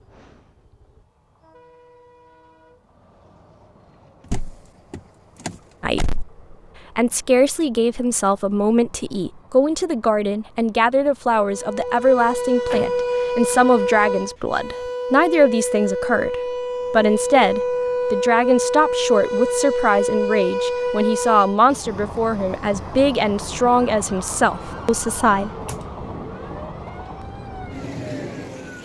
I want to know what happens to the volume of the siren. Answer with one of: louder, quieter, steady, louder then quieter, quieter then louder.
quieter.